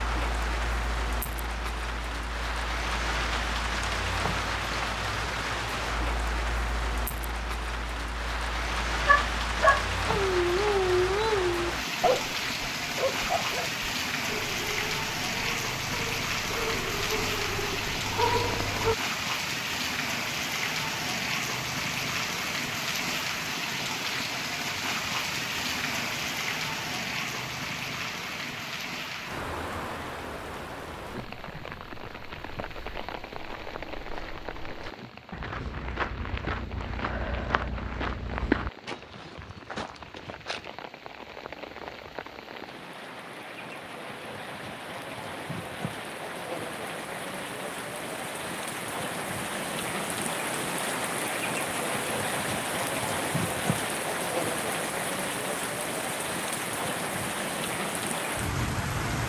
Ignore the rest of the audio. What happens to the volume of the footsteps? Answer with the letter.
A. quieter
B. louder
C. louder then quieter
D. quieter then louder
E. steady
C.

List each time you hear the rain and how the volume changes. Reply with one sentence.
The rain can be heard from 0.0 to 59.2 s, getting quieter then louder.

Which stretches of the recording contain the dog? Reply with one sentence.
The dog can be heard from 9.1 to 18.9 s.